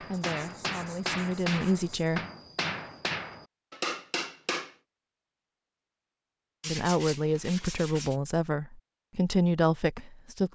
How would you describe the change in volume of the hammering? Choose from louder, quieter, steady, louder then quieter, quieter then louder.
steady.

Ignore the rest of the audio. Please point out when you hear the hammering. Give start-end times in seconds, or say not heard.
0.0-4.8.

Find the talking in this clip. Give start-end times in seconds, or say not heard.
0.1-2.2, 6.7-10.4.